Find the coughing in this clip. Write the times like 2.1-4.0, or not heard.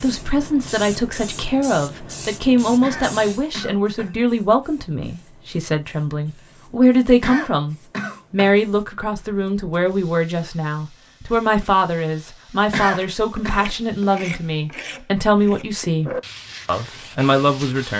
2.8-4.2, 7.2-8.6, 12.7-13.6.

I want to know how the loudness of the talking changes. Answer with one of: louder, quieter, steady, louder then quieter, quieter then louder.
steady.